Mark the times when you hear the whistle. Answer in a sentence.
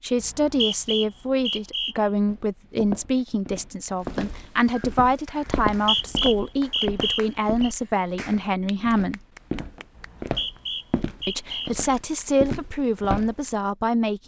You can hear the whistle from 0.2 to 1.9 s, from 5.7 to 7.7 s and from 9.9 to 11.7 s.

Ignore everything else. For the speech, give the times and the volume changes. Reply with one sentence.
The speech can be heard from 0.0 to 9.2 s, at a steady volume; and briefly from 11.2 to 14.2 s.